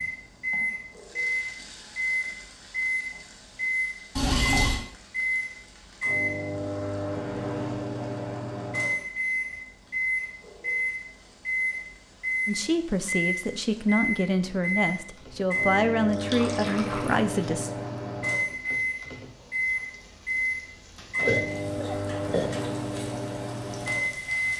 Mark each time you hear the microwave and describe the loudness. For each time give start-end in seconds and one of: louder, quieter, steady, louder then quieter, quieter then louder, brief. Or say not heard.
0.0-24.5 steady.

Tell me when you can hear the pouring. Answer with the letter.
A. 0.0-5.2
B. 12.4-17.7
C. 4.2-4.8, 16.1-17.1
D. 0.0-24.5
C.